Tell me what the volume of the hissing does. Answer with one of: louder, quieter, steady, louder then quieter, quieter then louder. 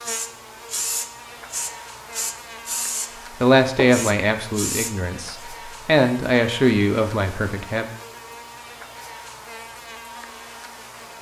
steady.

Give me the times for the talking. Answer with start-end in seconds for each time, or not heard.
3.4-7.8.